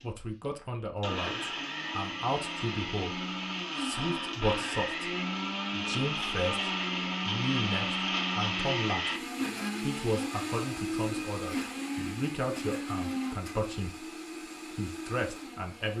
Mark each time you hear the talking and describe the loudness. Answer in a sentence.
The talking can be heard from 0.0 to 9.2 s, at a steady volume; and from 9.8 to 15.9 s, at a steady volume.